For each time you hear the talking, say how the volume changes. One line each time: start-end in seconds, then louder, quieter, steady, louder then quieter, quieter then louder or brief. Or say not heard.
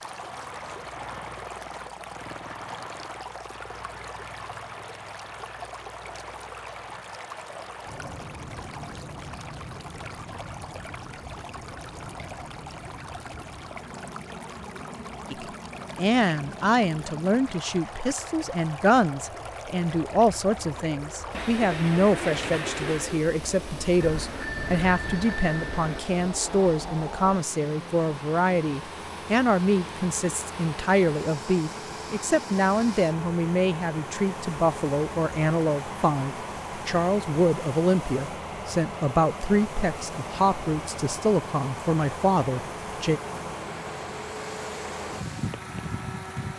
15.3-43.2 steady.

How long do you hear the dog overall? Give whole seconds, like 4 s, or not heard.
not heard.